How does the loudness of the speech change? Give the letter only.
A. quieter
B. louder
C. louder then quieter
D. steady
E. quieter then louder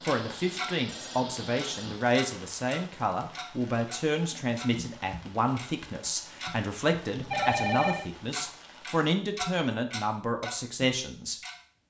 D.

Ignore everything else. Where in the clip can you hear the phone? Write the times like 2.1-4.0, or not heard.
0.8-1.9, 7.2-8.1.